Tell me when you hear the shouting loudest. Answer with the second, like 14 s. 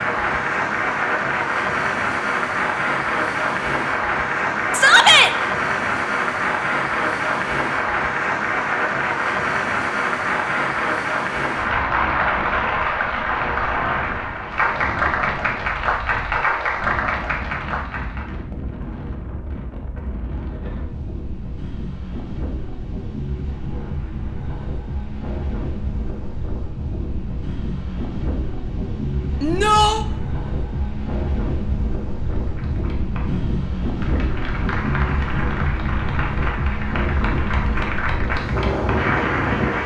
5 s.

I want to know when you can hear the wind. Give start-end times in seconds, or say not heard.
0.0-39.8.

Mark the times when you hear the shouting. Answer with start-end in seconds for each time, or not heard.
4.7-5.3, 29.4-30.1.